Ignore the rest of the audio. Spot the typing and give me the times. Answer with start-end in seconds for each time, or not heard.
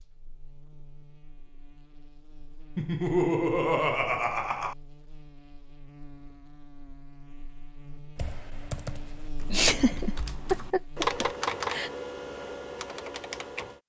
8.2-13.8.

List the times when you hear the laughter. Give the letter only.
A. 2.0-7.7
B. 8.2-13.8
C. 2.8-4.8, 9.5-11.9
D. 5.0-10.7
C.